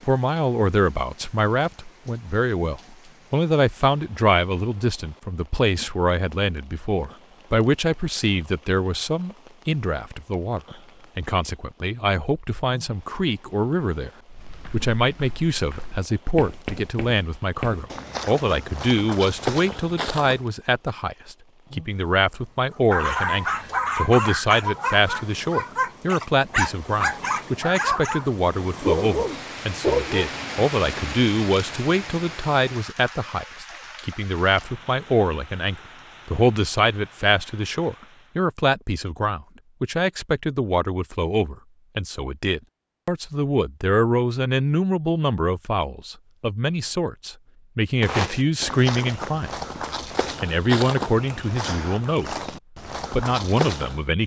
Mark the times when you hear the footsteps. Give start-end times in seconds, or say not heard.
14.2-20.4, 48.0-54.0.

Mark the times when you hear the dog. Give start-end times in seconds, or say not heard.
22.9-30.4.